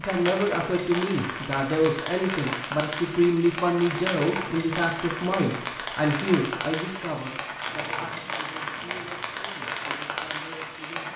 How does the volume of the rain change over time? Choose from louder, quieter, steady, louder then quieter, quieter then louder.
steady.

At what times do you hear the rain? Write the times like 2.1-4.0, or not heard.
0.0-11.1.